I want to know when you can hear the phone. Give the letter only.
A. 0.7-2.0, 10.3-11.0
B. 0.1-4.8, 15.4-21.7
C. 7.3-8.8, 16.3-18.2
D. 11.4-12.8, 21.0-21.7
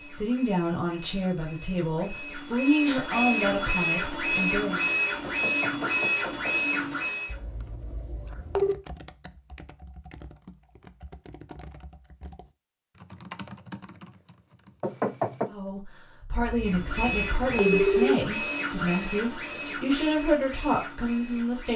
C.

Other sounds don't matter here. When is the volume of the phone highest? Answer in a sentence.
The volume of the phone peaks at 18 seconds.